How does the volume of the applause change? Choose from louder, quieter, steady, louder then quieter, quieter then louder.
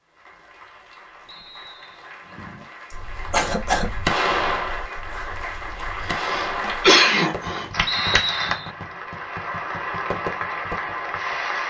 louder.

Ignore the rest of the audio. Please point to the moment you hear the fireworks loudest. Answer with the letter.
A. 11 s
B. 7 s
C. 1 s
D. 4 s
D.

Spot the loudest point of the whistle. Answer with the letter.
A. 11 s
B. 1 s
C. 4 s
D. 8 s
D.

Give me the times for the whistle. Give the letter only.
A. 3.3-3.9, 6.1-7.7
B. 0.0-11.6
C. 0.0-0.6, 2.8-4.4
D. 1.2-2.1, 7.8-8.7
D.